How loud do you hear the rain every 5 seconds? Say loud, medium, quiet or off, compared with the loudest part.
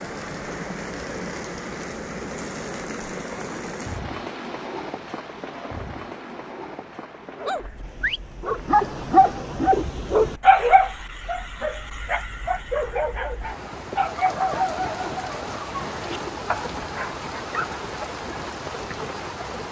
loud, medium, medium, loud.